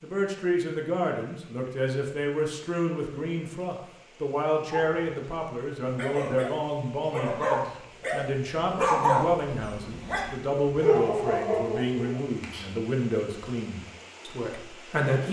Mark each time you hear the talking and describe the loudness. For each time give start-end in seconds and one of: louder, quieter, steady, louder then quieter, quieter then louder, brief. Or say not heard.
0.0-15.2 steady.